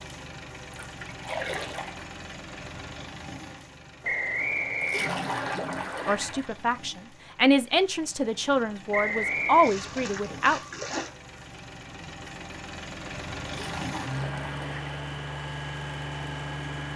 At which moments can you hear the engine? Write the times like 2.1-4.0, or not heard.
0.0-16.9.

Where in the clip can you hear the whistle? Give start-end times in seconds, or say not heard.
4.0-5.5, 8.9-9.8.